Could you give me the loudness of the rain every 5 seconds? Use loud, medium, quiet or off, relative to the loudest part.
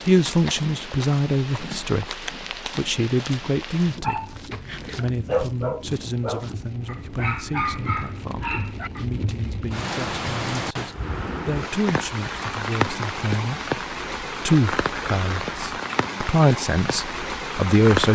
medium, medium, loud, loud.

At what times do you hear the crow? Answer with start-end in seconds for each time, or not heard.
not heard.